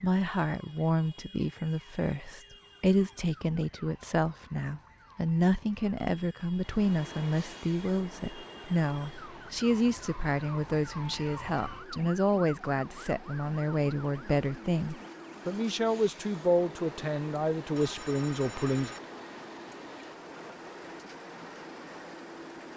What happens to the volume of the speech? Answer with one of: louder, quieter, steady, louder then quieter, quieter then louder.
steady.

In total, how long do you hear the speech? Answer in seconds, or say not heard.
19 s.